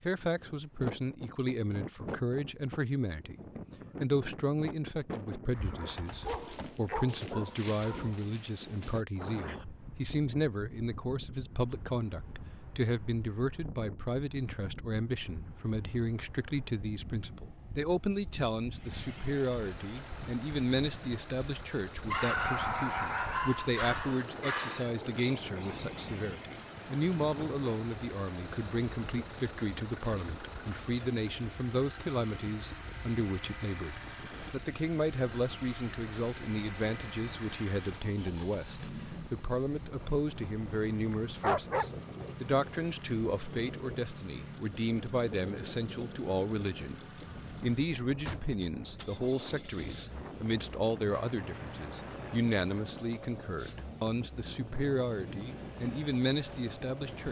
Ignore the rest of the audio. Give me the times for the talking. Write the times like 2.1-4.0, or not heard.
0.0-3.4, 4.0-57.2.